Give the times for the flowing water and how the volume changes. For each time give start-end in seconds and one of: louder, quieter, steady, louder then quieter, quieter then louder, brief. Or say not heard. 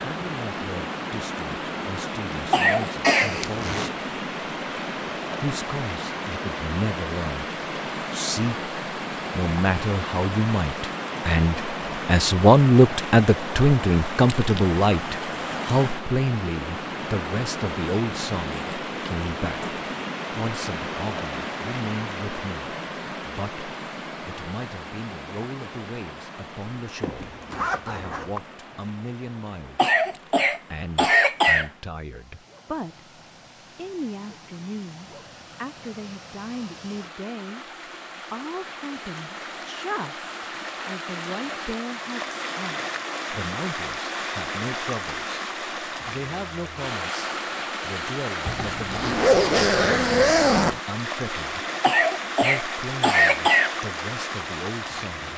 0.0-55.3 quieter then louder.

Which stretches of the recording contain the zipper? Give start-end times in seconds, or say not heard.
3.0-3.9, 27.0-28.4, 48.5-50.8.